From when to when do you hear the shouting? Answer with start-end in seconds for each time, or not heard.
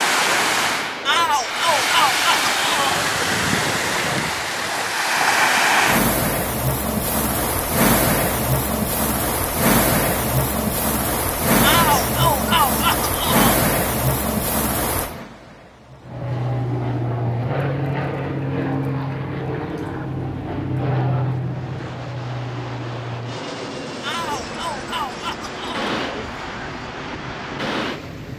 1.1-3.0, 11.6-13.6, 24.0-25.9.